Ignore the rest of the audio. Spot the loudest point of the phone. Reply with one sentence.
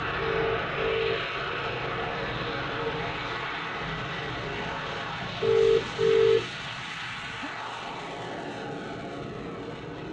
The loudest moment of the phone is at 6 seconds.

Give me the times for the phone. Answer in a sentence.
You can hear the phone from 0.3 to 1.3 s and from 5.4 to 6.5 s.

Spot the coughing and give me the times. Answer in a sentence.
You can hear the coughing from 6.9 to 7.5 s.